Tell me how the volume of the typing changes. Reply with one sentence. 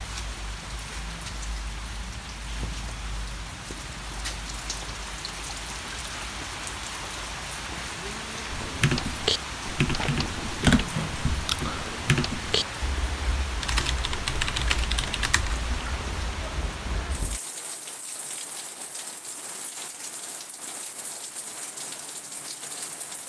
The loudness of the typing goes down.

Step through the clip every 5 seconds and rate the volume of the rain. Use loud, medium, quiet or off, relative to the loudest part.
loud, loud, loud, loud, medium.